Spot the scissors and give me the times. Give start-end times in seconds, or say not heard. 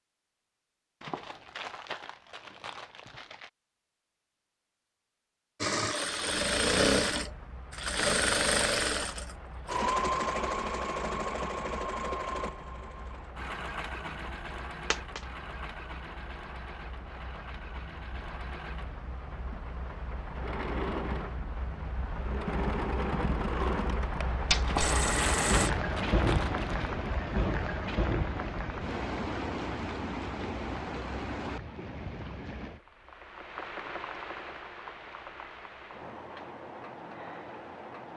not heard.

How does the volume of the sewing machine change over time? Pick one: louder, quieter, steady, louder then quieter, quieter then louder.
quieter then louder.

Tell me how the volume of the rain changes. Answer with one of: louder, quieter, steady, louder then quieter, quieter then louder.
louder then quieter.